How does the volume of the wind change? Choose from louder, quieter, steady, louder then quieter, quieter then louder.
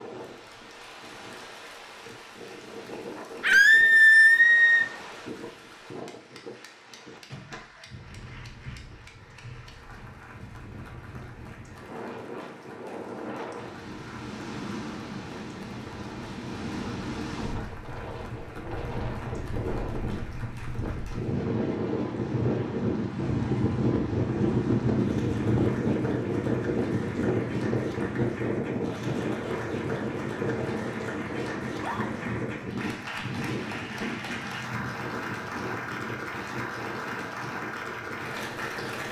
louder then quieter.